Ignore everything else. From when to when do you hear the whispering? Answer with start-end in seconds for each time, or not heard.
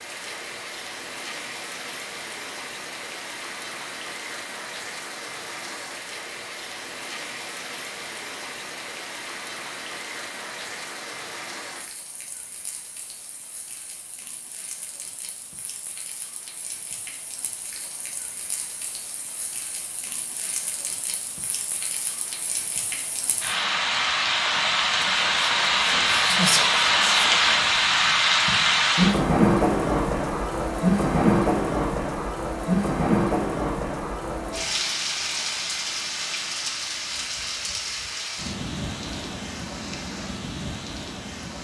25.0-27.9.